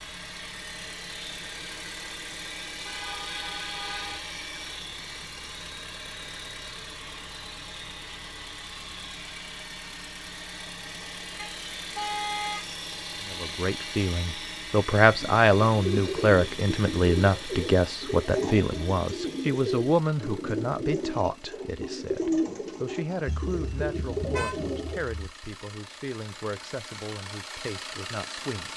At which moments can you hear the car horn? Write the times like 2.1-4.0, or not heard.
2.9-4.2, 11.3-12.7, 23.2-25.1.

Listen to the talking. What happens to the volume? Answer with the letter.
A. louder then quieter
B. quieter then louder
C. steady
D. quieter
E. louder
D.